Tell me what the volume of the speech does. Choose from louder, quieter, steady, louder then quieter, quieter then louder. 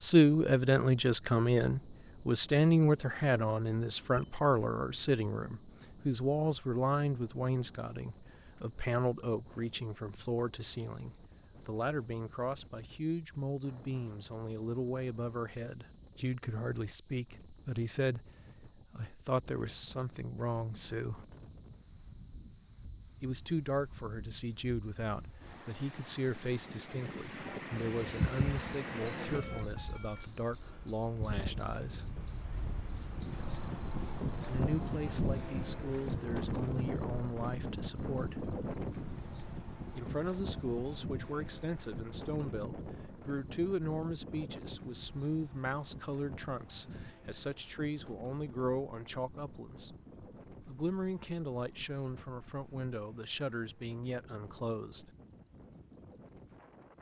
quieter.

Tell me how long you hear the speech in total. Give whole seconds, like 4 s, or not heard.
49 s.